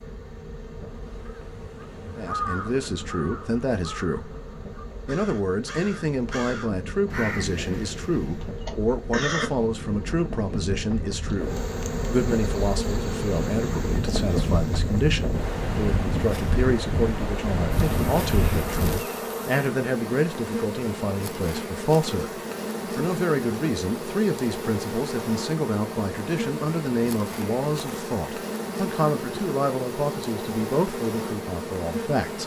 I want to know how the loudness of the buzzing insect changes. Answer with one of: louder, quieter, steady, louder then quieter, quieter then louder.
louder.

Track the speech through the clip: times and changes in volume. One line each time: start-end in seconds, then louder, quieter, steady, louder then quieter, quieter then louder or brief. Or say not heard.
2.1-4.3 brief
5.0-32.4 steady.